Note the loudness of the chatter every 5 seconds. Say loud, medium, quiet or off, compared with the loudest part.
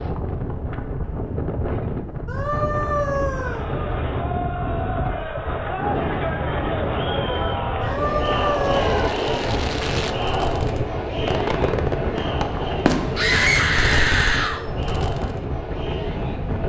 medium, loud, loud, medium.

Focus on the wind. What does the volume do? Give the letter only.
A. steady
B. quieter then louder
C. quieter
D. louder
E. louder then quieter
A.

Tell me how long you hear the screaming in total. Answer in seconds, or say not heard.
4 s.